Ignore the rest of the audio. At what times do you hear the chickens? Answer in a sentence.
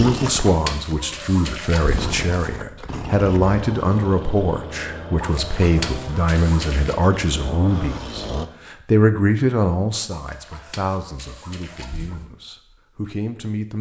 You can hear the chickens from 0.0 to 2.6 s, from 5.2 to 7.0 s and from 10.1 to 12.3 s.